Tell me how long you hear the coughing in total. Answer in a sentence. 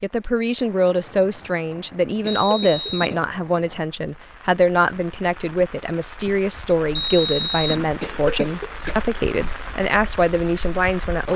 The coughing can be heard for 2 seconds in total.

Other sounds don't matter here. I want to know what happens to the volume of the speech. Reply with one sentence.
The volume of the speech stays about the same.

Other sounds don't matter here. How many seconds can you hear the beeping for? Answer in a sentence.
You can hear the beeping for 2 seconds altogether.